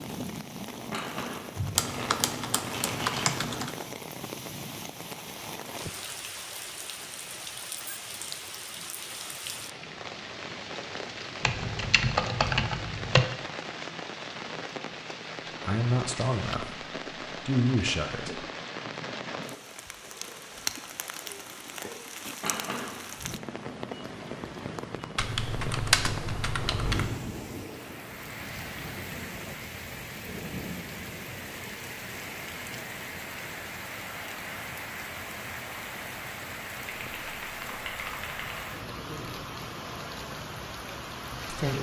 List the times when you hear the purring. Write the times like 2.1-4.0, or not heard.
not heard.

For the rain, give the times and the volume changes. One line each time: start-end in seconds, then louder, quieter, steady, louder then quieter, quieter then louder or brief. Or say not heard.
0.0-41.7 steady.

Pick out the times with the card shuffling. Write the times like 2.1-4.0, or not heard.
0.9-3.5, 22.4-23.1.